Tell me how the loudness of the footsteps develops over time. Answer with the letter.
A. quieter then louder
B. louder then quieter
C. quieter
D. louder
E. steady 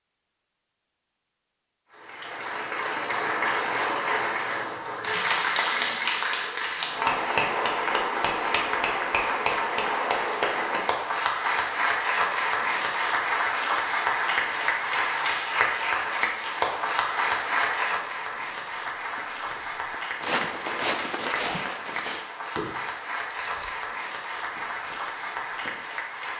B.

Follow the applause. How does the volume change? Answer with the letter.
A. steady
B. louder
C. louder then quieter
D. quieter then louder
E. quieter
E.